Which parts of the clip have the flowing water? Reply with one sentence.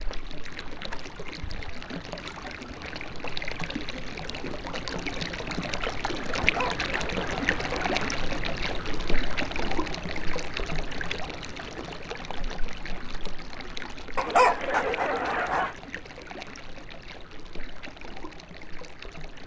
The flowing water can be heard from 0.0 to 19.4 s.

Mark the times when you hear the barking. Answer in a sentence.
The barking can be heard from 6.3 to 7.8 s and from 14.2 to 15.8 s.